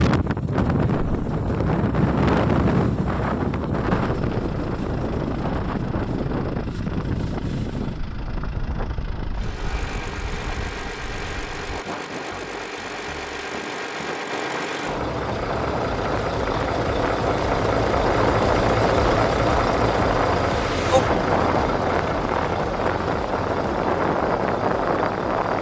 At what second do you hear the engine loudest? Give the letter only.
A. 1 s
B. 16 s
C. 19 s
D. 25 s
C.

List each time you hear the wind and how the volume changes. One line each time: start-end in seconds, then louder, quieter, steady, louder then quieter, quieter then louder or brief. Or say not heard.
0.0-25.5 quieter then louder.